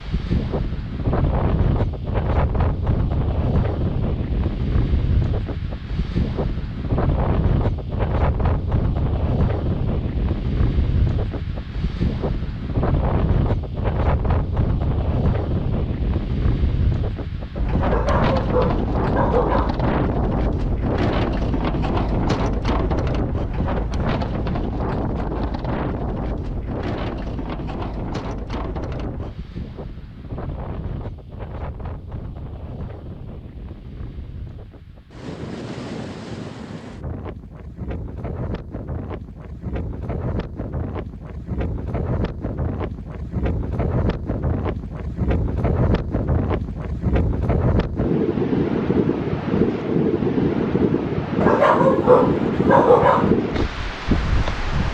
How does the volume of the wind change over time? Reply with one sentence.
The loudness of the wind goes down, then up.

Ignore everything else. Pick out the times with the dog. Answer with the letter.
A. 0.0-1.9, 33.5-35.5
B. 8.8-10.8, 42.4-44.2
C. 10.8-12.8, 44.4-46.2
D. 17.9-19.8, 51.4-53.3
D.